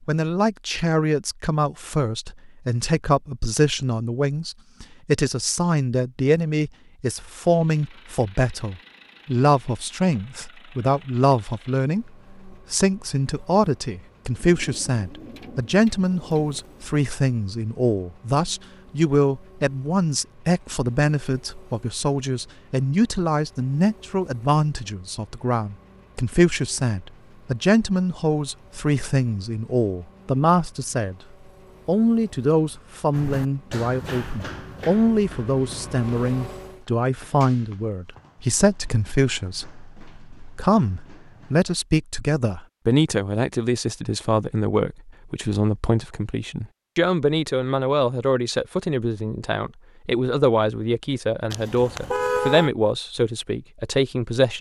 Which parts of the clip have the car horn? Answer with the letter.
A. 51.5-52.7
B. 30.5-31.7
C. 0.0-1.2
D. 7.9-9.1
A.